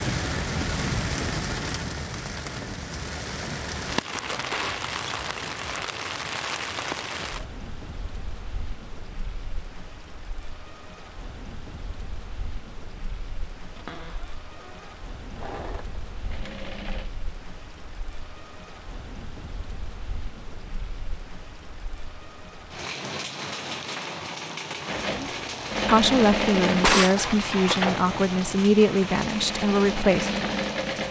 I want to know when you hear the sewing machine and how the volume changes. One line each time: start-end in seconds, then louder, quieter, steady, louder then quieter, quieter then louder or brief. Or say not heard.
15.3-17.1 brief
24.9-31.0 quieter then louder.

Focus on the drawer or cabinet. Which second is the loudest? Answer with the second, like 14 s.
27 s.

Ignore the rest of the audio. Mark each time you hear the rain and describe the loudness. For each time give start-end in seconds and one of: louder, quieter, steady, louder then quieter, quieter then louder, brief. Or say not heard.
0.0-31.0 quieter then louder.